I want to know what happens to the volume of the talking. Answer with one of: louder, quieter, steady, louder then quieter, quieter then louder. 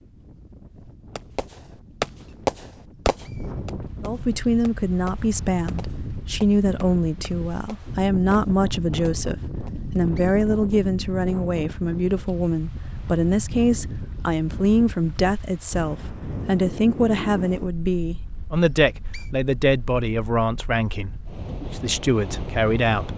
steady.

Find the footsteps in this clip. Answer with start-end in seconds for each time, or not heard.
not heard.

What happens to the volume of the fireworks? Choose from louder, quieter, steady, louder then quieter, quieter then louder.
quieter.